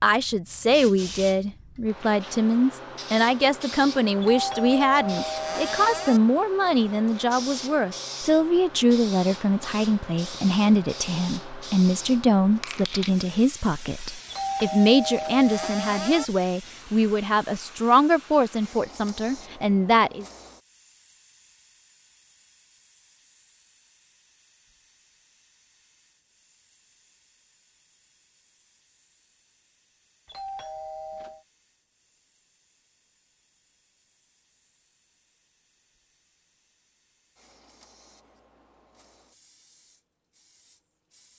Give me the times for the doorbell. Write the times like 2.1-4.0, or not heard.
4.2-6.2, 14.3-16.2, 30.2-31.4.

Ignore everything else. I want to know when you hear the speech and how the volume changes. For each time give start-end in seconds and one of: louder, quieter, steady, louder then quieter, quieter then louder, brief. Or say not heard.
0.0-20.2 steady.